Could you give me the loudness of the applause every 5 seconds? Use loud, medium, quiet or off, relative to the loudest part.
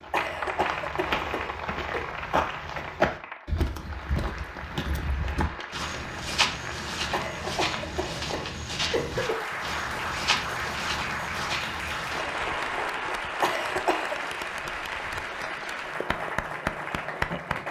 medium, medium, loud, loud.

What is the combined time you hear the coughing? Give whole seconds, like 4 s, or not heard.
5 s.